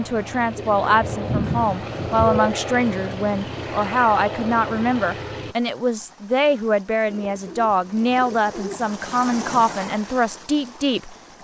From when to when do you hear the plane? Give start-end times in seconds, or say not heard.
0.0-5.5.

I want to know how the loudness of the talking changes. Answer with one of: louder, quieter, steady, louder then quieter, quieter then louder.
steady.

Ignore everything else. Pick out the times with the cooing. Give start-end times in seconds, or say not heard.
0.6-2.5, 7.0-8.8.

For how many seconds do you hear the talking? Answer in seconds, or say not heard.
11 s.